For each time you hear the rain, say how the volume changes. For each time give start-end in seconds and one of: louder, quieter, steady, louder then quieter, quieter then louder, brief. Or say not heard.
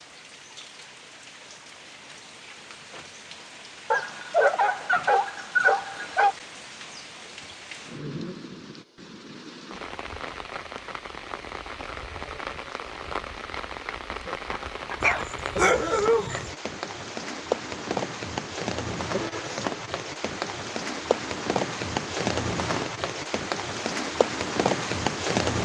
0.0-25.5 louder.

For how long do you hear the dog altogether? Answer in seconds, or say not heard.
4 s.